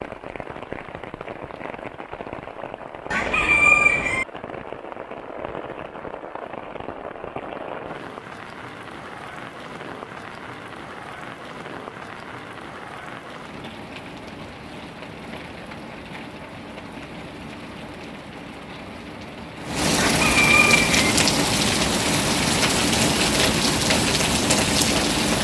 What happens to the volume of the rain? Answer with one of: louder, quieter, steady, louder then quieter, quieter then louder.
louder.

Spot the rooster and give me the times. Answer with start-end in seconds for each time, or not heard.
3.1-4.2, 20.0-21.0.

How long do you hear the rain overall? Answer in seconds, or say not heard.
25 s.